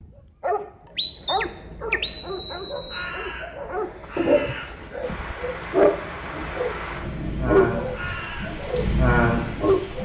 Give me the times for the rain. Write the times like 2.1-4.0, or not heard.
5.0-10.0.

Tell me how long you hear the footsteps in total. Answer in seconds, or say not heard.
not heard.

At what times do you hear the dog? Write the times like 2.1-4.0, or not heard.
0.0-10.0.